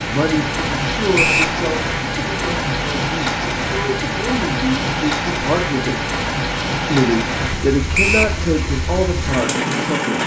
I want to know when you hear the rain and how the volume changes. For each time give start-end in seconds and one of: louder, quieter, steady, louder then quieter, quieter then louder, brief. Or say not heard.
0.0-10.2 steady.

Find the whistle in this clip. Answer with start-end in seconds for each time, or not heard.
1.1-1.6, 7.9-8.3.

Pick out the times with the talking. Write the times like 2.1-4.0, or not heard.
0.0-6.0, 6.8-10.2.